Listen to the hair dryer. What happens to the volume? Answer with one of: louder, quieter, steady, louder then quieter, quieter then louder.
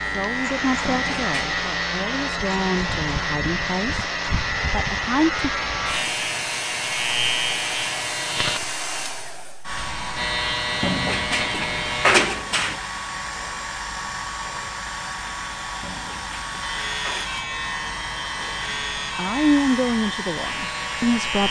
steady.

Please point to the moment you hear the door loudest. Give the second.
12 s.